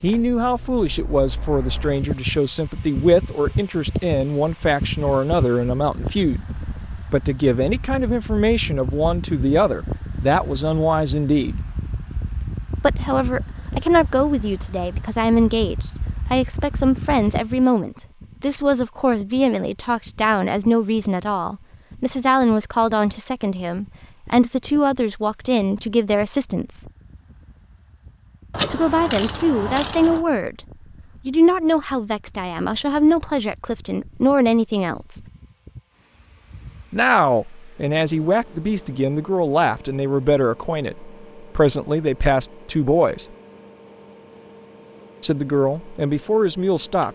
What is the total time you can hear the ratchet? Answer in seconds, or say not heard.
2 s.